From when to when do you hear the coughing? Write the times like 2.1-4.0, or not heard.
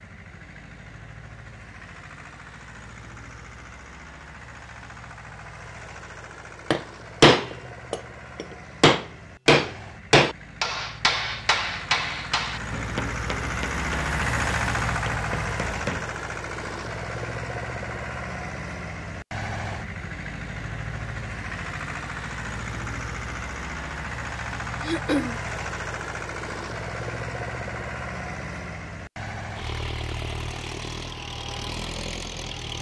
24.8-25.4.